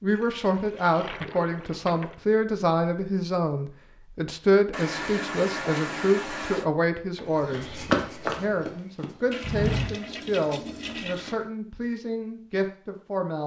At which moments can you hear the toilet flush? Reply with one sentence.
You can hear the toilet flush from 0.1 to 2.1 s, from 4.7 to 6.7 s and from 9.3 to 11.4 s.